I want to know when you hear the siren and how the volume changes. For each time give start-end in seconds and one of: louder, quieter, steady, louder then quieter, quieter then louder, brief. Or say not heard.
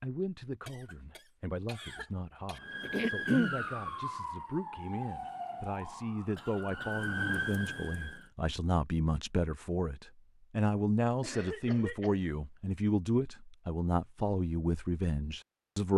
2.5-8.3 quieter then louder.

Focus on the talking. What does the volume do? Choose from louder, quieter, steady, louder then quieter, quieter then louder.
louder.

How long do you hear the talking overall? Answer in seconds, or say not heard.
16 s.